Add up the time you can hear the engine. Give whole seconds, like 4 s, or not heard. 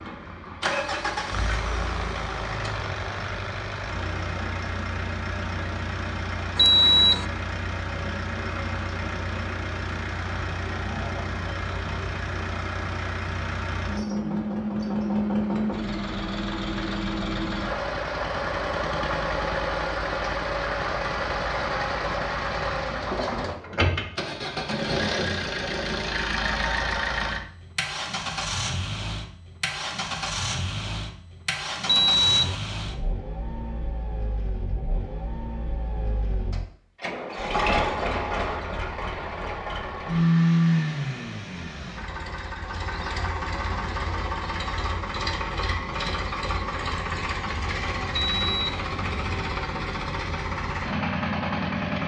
52 s.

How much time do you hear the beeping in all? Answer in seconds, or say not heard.
2 s.